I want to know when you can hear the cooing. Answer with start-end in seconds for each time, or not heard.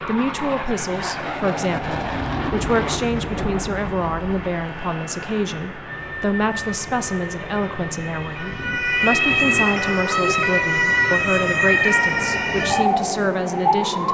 not heard.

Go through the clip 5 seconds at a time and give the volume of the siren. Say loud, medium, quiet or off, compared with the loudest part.
off, loud, loud.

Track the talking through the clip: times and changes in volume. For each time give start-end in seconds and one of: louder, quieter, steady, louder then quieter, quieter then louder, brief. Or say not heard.
0.1-14.0 steady.